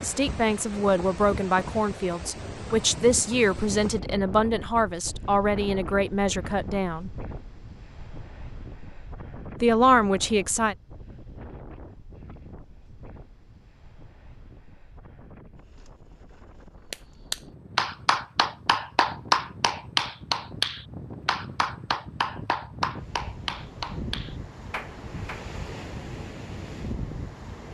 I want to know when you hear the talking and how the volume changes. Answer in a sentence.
The talking can be heard from 0.0 to 7.1 s, at a steady volume; and briefly from 9.6 to 10.8 s.